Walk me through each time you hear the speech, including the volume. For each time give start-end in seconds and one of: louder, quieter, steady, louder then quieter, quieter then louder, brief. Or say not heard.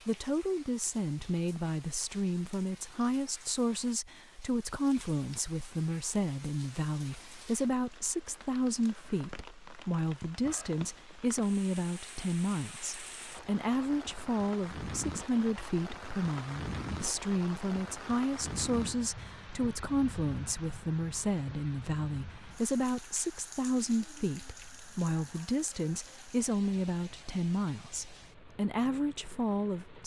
0.1-30.0 steady.